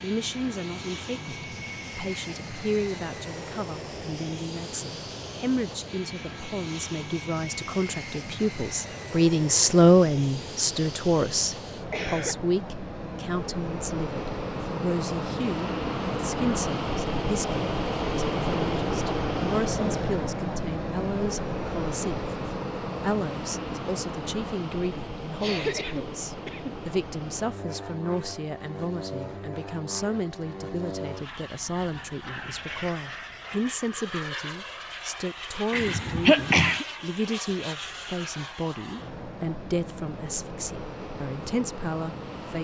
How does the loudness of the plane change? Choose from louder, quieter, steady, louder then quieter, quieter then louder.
louder then quieter.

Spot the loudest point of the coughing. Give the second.
36 s.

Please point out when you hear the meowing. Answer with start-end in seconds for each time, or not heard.
not heard.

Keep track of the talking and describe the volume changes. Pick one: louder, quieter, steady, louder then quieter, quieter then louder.
louder then quieter.